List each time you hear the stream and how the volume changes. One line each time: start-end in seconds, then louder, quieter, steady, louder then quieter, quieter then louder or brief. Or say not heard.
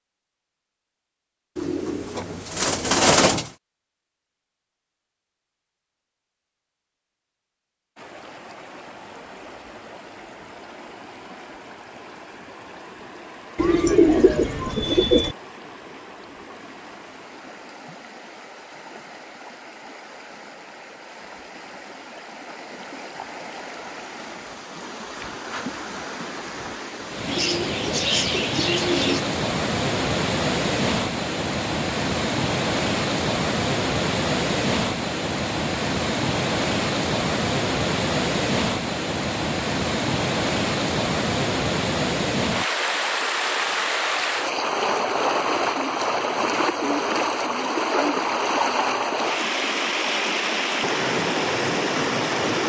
8.0-52.6 louder.